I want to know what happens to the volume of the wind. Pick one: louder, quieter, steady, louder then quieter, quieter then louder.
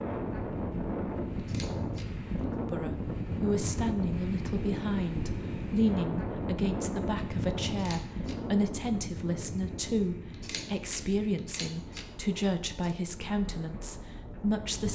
quieter.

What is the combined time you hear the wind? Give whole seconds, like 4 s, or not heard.
15 s.